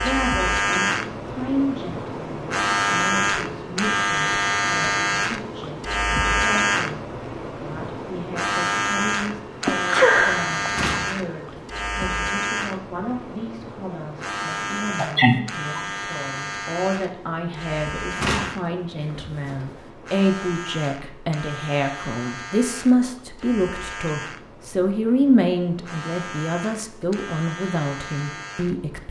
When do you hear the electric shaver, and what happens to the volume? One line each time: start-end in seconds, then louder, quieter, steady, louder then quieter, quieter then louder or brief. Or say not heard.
0.0-29.0 quieter.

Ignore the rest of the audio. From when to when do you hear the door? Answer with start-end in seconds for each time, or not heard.
10.6-11.6, 18.1-19.7.